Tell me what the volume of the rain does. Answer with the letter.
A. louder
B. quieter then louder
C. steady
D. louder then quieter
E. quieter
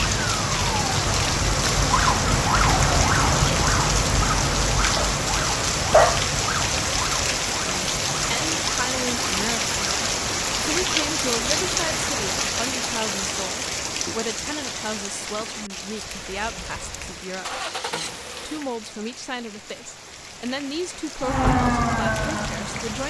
E.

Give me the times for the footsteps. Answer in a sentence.
The footsteps can't be heard in this clip.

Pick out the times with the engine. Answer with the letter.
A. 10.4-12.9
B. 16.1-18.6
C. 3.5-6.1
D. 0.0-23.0
B.